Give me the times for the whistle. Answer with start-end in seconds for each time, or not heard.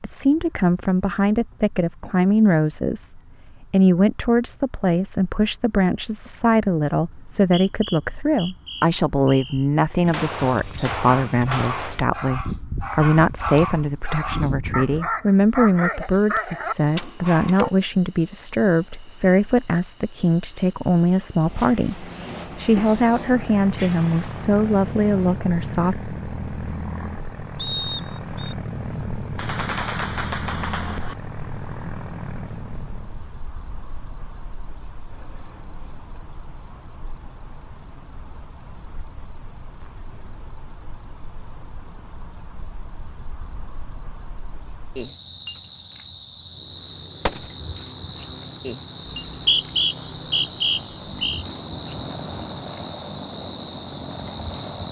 7.1-9.7, 27.6-28.6, 49.0-51.4.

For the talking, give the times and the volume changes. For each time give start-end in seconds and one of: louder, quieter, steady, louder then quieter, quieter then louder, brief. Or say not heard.
0.0-25.9 steady.